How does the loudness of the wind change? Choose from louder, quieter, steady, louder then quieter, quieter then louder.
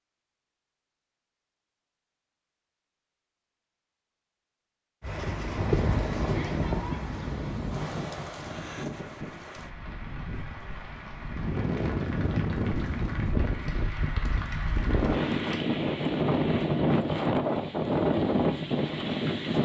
quieter then louder.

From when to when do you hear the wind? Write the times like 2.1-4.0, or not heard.
5.0-19.6.